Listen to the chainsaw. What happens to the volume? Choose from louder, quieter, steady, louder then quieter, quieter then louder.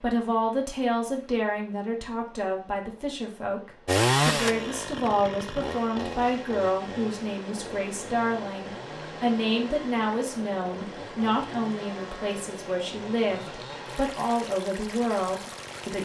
quieter.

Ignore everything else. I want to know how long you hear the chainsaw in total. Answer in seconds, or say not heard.
12 s.